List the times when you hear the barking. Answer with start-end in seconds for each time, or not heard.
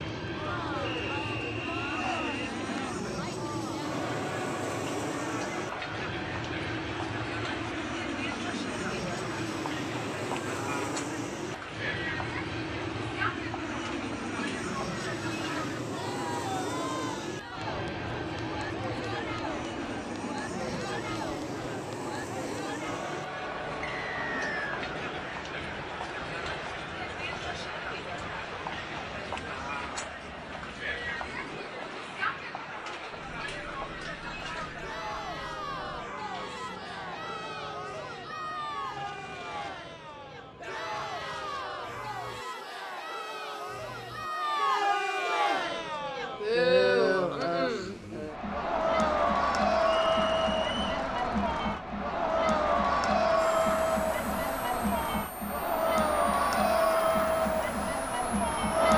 not heard.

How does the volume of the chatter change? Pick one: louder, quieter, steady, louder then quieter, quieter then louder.
louder.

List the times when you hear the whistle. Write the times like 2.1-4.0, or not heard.
0.8-2.5, 23.8-24.8, 50.0-50.9.